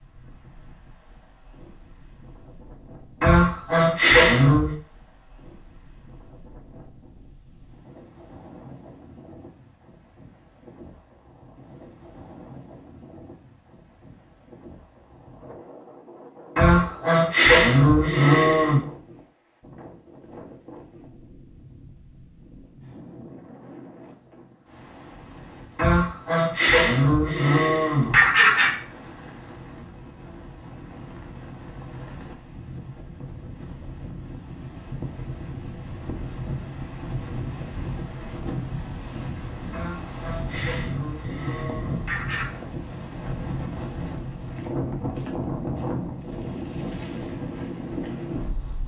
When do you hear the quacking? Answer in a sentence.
The quacking can be heard from 3.2 to 4.7 s, from 16.6 to 18.8 s, from 25.8 to 28.7 s and from 39.7 to 42.5 s.